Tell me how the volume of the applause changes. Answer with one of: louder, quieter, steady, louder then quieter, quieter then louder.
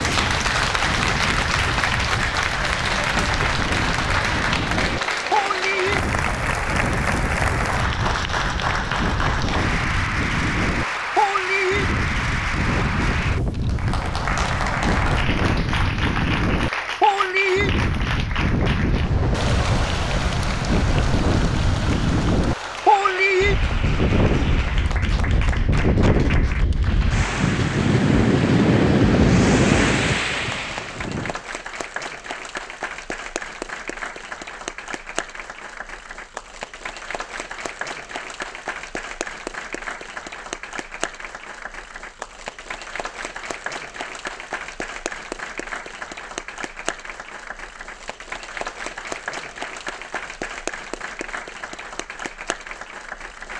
quieter.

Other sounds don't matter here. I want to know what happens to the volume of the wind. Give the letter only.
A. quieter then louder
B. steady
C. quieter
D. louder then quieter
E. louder
E.